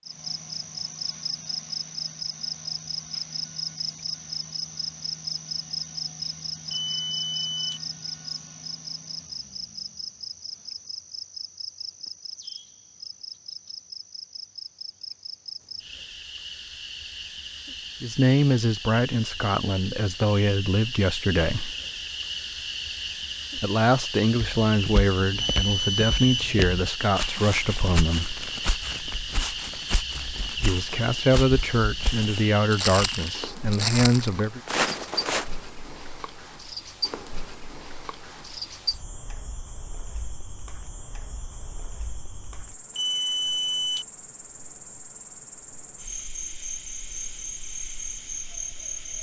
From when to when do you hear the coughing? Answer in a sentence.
You can't hear the coughing here.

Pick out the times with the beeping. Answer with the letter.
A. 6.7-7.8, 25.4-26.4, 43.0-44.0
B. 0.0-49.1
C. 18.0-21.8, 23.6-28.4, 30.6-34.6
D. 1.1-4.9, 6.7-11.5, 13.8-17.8
A.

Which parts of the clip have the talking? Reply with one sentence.
You can hear the talking from 18.0 to 21.8 s, from 23.6 to 28.4 s and from 30.6 to 34.6 s.